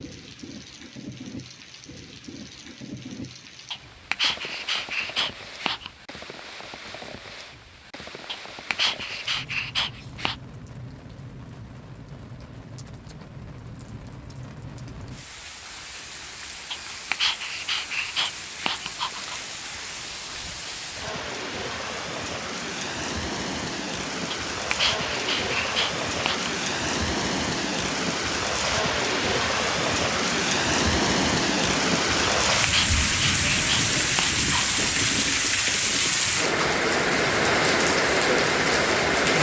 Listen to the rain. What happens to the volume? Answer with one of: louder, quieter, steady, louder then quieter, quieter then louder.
louder.